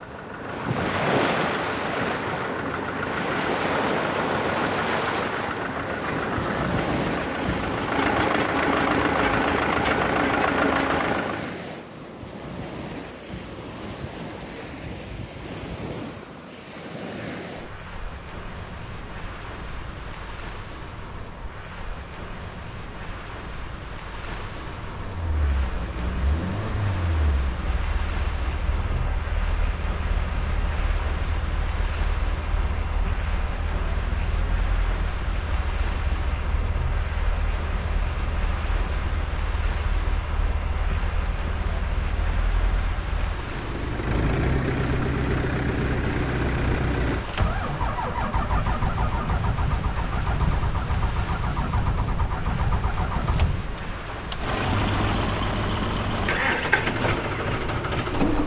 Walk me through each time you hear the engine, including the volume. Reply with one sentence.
The engine can be heard from 0.0 to 11.5 s, getting louder; and from 24.9 to 58.4 s, getting louder.